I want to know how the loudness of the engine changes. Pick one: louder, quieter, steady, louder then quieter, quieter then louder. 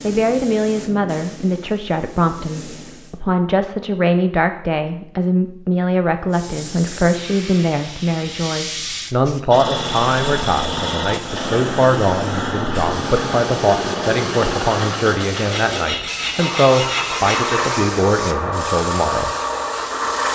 steady.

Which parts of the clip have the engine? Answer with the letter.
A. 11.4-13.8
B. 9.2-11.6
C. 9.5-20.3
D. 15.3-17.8
C.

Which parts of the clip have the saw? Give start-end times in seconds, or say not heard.
15.3-17.8.